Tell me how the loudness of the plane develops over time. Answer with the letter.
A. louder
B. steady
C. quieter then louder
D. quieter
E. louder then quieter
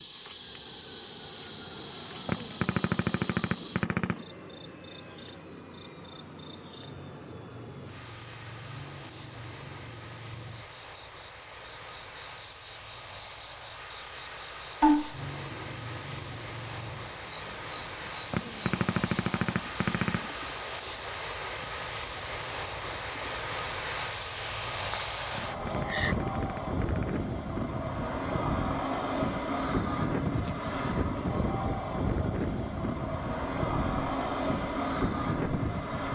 A.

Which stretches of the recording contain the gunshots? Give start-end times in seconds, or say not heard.
2.2-4.2, 18.3-20.3, 25.3-27.1.